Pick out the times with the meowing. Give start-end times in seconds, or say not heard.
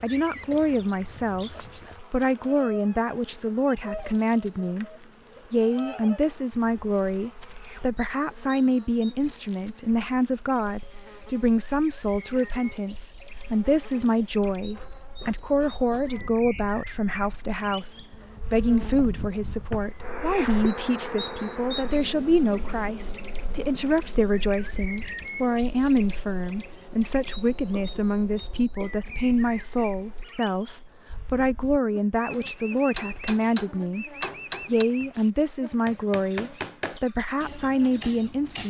not heard.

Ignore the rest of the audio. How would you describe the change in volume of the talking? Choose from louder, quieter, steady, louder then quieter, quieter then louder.
steady.